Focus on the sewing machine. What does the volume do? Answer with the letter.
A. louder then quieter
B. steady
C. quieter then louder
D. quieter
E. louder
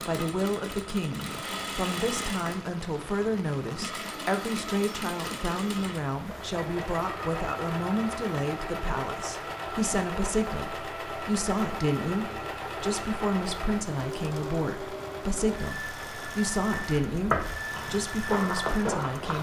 B.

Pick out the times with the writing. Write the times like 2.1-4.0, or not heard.
not heard.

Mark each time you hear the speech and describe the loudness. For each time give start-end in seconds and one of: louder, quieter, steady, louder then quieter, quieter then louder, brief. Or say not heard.
0.1-19.3 steady.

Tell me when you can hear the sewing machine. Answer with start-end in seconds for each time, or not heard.
0.0-19.3.